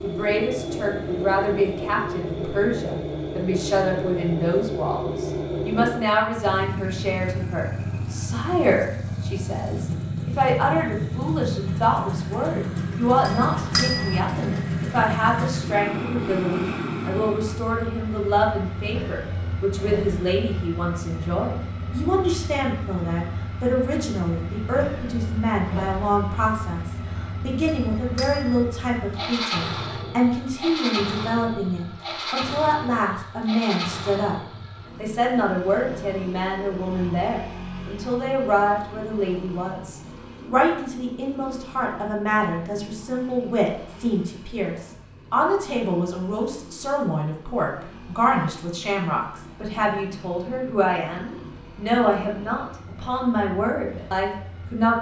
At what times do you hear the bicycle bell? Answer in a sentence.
You can hear the bicycle bell from 13.2 to 14.2 s and from 27.6 to 28.6 s.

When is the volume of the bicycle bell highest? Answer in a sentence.
The volume of the bicycle bell peaks at 14 seconds.